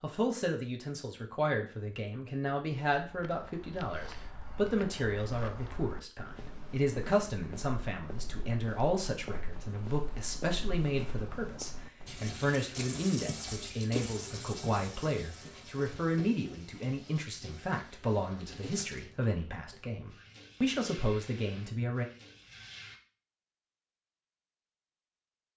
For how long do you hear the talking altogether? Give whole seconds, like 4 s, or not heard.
22 s.